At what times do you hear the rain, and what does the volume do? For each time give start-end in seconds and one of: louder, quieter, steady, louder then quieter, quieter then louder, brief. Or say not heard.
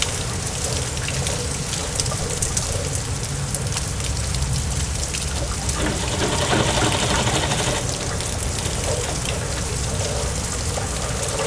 0.0-11.4 steady.